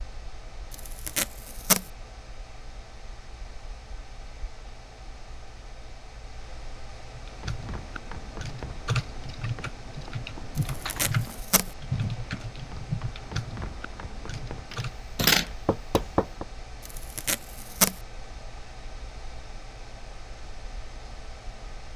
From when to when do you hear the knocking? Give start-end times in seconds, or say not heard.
14.7-16.4.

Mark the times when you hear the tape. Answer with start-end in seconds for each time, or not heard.
0.7-1.9, 10.6-11.7, 16.9-17.9.